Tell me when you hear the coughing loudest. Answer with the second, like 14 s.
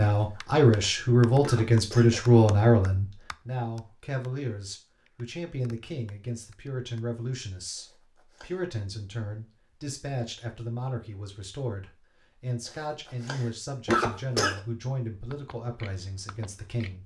14 s.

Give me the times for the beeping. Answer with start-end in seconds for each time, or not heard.
not heard.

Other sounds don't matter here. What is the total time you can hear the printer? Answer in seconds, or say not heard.
not heard.